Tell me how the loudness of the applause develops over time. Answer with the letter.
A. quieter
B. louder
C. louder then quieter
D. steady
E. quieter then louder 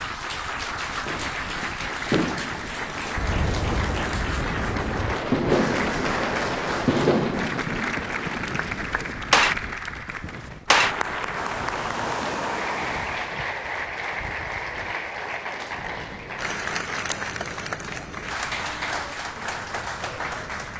D.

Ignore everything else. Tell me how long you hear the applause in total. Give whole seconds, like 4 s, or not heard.
21 s.